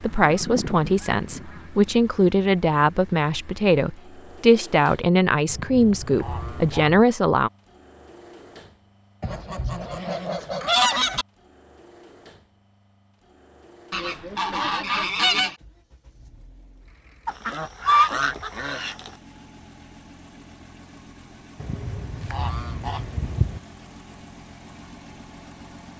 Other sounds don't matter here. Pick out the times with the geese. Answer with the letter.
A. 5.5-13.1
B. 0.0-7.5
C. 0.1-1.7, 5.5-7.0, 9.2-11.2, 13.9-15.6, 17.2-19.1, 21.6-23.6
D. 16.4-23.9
C.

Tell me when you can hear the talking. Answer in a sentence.
The talking can be heard from 0.0 to 7.5 s.